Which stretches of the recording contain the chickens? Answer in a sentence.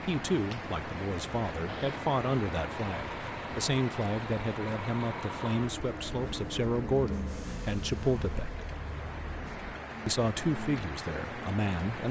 The chickens can't be heard in this clip.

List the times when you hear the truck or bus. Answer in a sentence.
You can hear the truck or bus from 1.6 to 9.8 s.